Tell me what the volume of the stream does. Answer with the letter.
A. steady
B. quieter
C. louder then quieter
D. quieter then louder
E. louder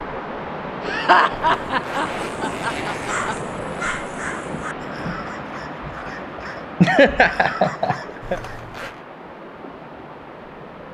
B.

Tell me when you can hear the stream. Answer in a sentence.
The stream can be heard from 0.0 to 10.9 s.